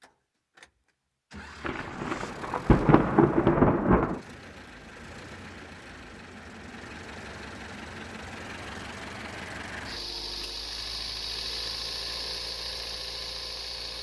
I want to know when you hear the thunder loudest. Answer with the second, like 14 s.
4 s.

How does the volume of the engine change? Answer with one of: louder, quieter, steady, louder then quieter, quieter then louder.
louder.